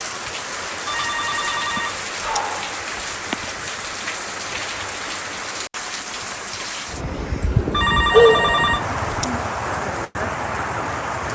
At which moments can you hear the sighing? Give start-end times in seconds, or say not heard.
1.8-3.4, 8.1-9.4.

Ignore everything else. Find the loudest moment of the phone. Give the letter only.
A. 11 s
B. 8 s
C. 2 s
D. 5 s
B.